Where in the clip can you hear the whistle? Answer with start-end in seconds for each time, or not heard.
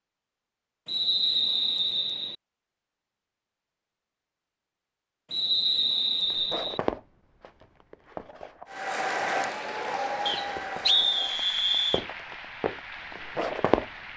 0.8-2.4, 5.3-6.8, 10.2-12.1.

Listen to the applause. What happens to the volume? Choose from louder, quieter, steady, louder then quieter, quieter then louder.
quieter.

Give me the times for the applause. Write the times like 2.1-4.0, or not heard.
8.7-14.1.